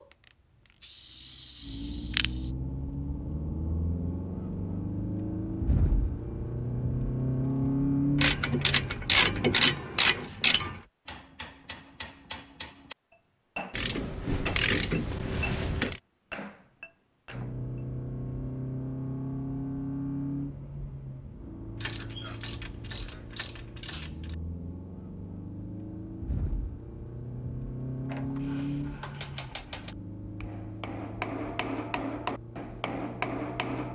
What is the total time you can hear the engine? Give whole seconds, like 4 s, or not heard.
26 s.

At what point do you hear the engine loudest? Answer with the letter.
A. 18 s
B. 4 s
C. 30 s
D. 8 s
D.